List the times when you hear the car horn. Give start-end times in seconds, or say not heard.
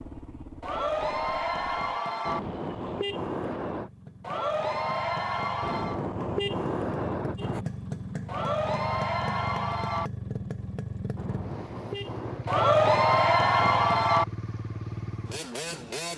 2.2-3.9, 5.6-7.7, 11.2-12.5.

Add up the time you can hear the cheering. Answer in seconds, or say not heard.
7 s.